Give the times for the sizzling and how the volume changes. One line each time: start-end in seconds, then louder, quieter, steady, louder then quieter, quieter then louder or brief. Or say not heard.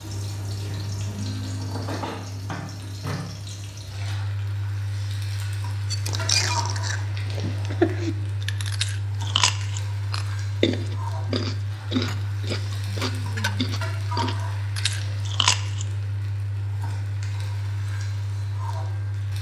0.0-19.3 steady.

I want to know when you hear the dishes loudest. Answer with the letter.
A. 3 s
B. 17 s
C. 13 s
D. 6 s
D.